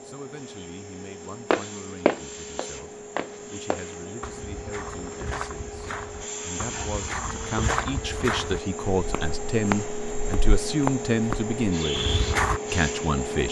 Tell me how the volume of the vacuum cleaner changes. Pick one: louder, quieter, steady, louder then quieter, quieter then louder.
louder.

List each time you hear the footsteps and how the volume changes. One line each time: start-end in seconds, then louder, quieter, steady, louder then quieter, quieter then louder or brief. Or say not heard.
1.5-12.6 quieter then louder.